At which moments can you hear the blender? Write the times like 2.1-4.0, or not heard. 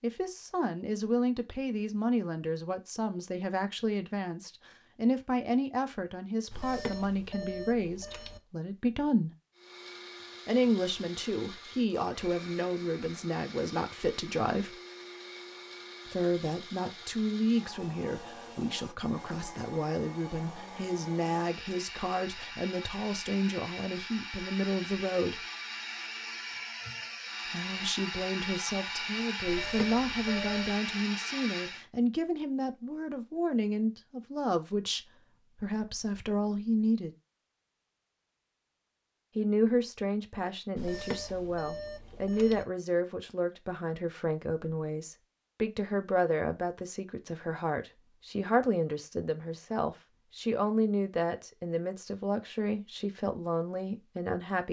9.5-31.9.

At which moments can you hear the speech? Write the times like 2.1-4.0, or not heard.
0.0-9.3, 10.4-14.8, 16.1-25.4, 27.4-37.1, 39.4-54.6.